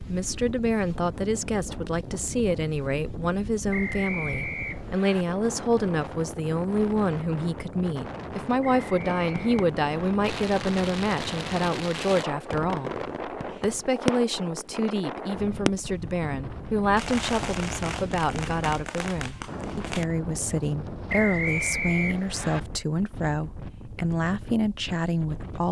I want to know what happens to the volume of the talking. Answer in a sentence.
The loudness of the talking stays about the same.